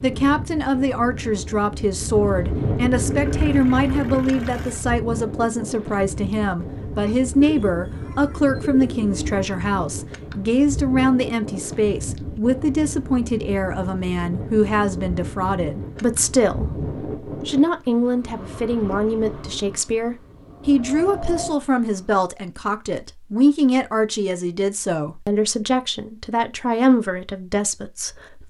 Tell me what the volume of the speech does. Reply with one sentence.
The loudness of the speech stays about the same.